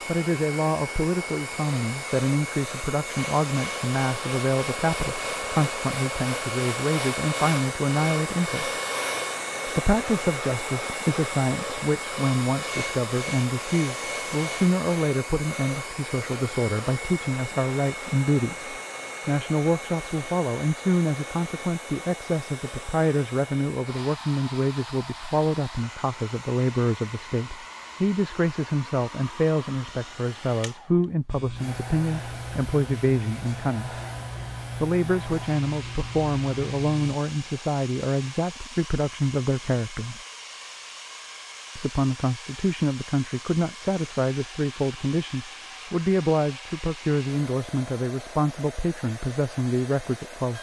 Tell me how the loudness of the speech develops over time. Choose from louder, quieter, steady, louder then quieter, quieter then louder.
steady.